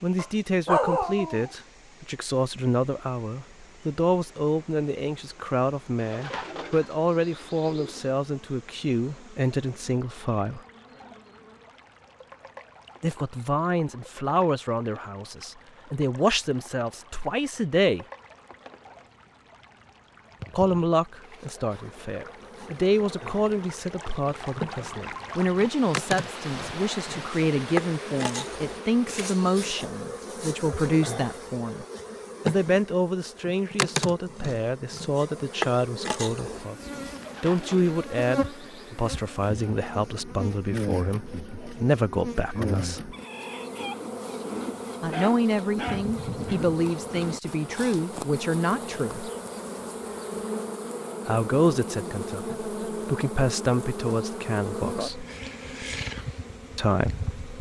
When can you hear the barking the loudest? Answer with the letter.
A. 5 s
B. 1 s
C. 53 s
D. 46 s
B.